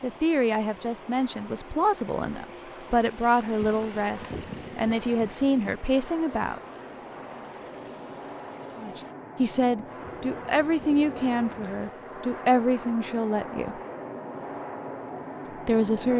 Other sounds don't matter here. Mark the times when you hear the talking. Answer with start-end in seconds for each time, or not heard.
0.0-6.6, 8.8-13.8, 15.7-16.1.